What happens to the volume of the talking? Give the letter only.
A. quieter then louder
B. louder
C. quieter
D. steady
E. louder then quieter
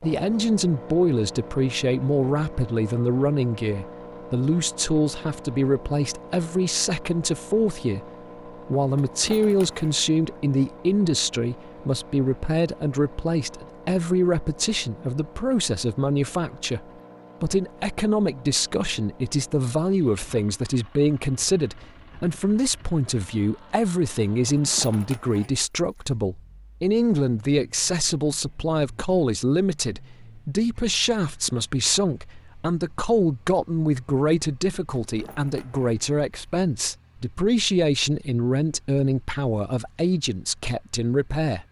D.